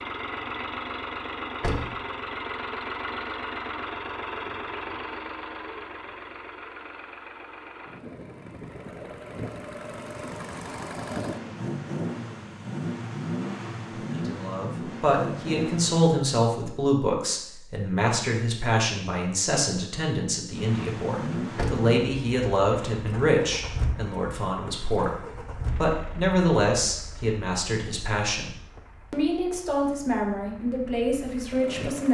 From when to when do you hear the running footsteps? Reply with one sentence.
The running footsteps can't be heard in this clip.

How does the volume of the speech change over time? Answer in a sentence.
The volume of the speech stays about the same.